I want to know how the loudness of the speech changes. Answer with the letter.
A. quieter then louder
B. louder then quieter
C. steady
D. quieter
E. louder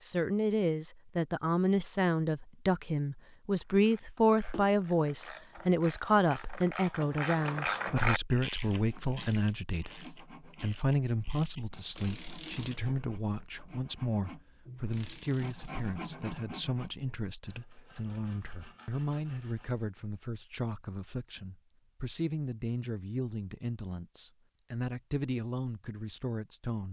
D.